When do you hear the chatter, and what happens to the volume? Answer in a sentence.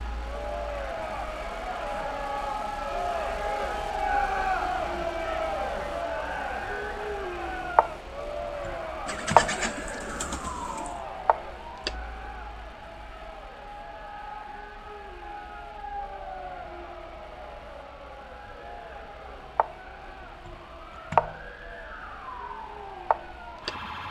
The chatter can be heard from 0.1 to 23.9 s, getting quieter.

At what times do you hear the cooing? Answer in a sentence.
The cooing can be heard from 9.1 to 11.0 s.